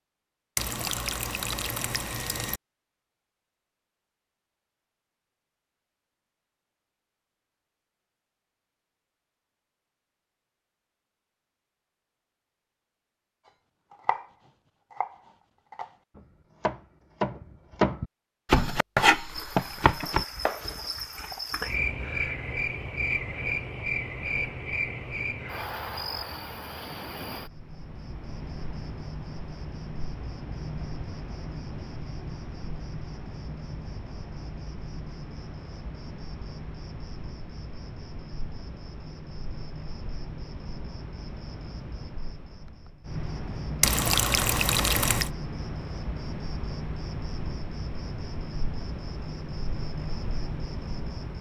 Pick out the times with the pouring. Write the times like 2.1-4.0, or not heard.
0.6-2.6, 43.8-45.3.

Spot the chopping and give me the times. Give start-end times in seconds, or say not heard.
13.9-14.3, 14.9-20.9.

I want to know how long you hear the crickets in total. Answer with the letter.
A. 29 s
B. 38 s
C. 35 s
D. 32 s
D.